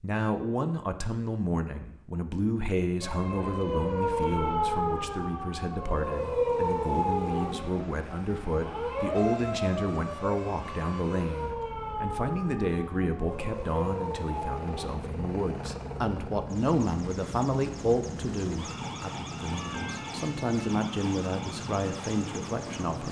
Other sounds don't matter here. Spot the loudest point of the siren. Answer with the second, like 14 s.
7 s.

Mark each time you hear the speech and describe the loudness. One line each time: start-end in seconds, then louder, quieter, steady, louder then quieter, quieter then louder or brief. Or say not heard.
0.0-23.0 steady.